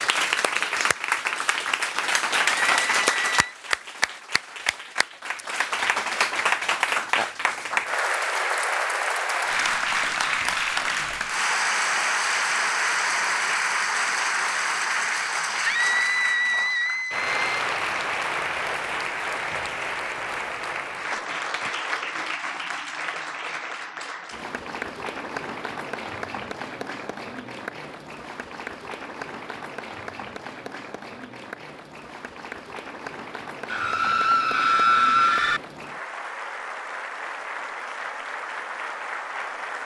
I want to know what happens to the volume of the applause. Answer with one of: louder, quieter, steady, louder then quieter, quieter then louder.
quieter.